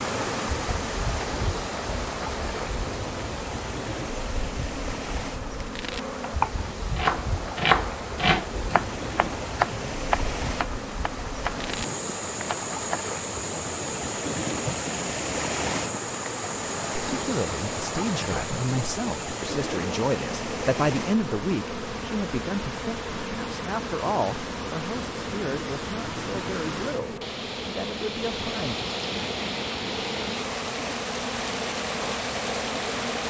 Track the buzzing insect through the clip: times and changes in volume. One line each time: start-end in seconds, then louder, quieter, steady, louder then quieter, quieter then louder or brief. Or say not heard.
0.0-33.2 steady.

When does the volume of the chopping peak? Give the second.
8 s.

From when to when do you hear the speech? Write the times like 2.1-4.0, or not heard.
17.1-28.8.